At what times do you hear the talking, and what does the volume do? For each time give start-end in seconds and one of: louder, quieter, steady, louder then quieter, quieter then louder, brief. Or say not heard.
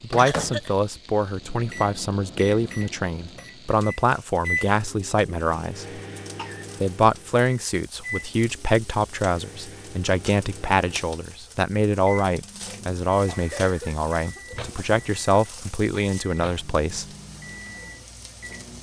0.0-6.0 steady
6.8-17.1 steady.